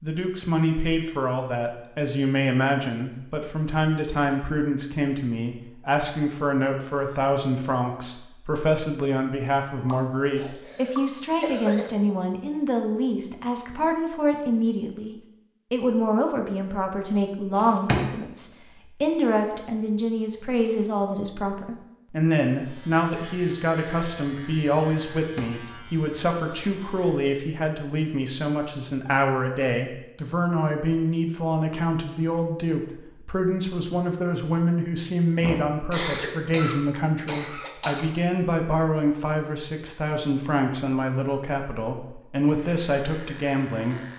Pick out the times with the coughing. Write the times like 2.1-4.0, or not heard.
9.8-11.9, 35.4-38.1.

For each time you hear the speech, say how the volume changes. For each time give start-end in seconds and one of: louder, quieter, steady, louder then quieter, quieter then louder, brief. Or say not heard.
0.0-44.0 steady.